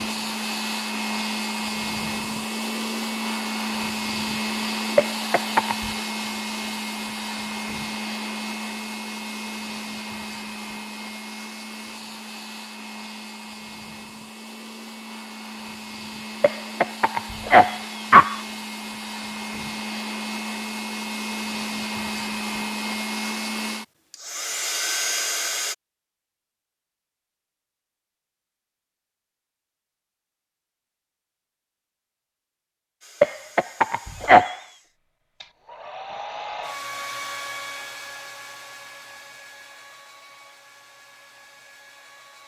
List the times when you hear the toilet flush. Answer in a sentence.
The toilet flush can't be heard in this clip.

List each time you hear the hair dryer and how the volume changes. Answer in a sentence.
You can hear the hair dryer from 0.0 to 25.8 s, getting quieter then louder; and from 33.0 to 42.4 s, getting louder then quieter.